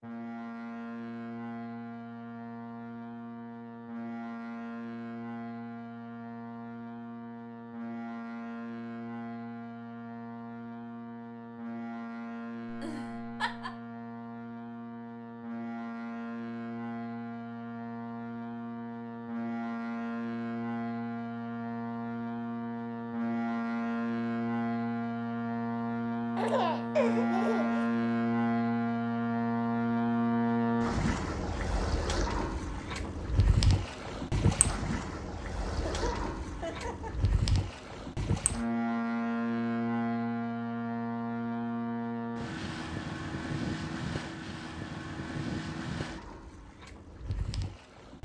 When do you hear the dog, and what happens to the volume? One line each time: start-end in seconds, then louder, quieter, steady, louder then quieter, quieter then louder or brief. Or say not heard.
not heard.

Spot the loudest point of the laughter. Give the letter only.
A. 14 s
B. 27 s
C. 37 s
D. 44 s
B.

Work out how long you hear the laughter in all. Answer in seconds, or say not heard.
4 s.